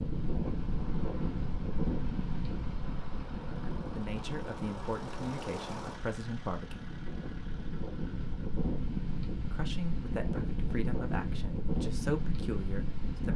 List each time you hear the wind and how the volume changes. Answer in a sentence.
You can hear the wind from 0.0 to 13.3 s, getting quieter then louder.